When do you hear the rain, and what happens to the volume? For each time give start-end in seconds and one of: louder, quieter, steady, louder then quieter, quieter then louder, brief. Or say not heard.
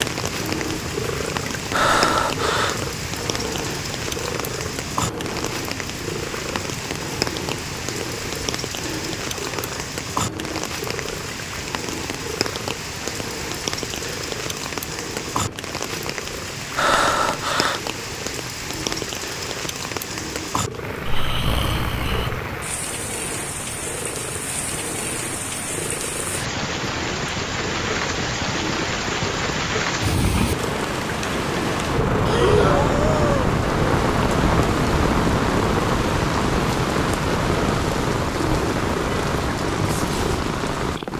0.0-41.1 louder.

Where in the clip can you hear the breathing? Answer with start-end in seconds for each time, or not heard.
1.7-2.8, 16.8-17.8, 21.1-22.4, 32.2-33.5.